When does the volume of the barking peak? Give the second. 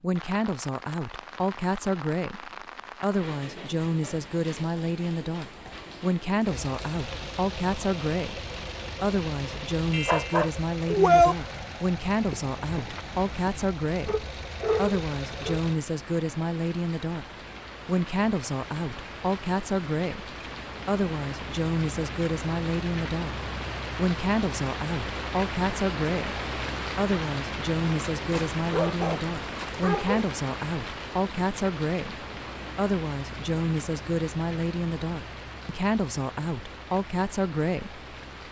11 s.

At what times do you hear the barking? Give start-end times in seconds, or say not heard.
9.9-11.3, 14.1-15.6, 28.3-30.3.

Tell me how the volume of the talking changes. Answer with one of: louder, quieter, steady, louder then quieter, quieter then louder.
steady.